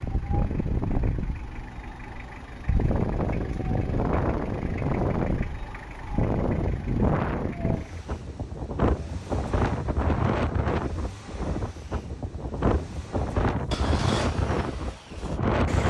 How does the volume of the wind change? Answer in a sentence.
The volume of the wind stays about the same.